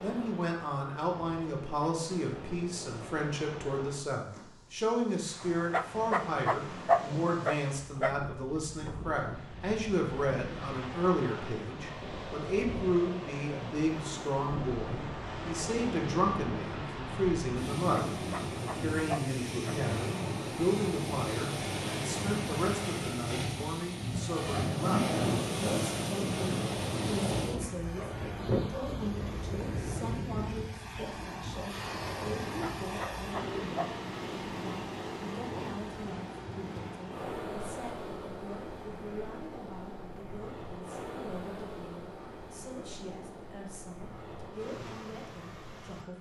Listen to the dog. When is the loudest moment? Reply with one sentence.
The loudest moment of the dog is at 7 seconds.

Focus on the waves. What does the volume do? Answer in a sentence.
The volume of the waves goes up, then down.